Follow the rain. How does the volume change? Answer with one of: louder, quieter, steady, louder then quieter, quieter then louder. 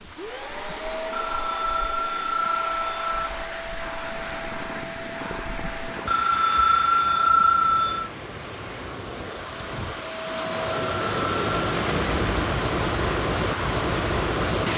louder.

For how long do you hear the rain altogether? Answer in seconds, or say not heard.
15 s.